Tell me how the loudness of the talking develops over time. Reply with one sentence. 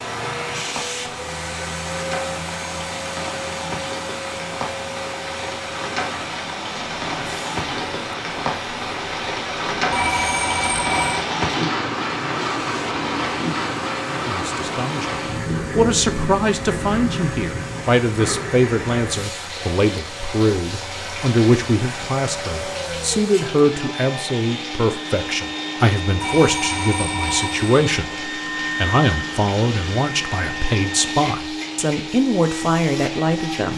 The loudness of the talking stays about the same.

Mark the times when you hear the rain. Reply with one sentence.
You can hear the rain from 0.0 to 33.7 s.